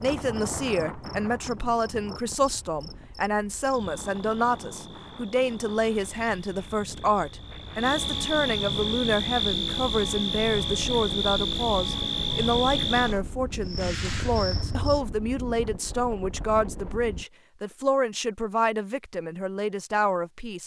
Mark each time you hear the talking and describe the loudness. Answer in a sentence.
You can hear the talking from 0.0 to 20.6 s, at a steady volume.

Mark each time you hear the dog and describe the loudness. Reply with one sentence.
You can't hear the dog here.